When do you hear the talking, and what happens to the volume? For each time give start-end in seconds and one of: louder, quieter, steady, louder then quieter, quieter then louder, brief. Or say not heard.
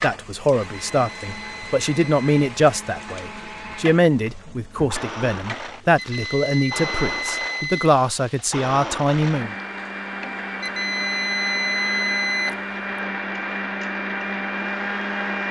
0.0-9.5 steady.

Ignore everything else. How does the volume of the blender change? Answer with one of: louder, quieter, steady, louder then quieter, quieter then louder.
louder.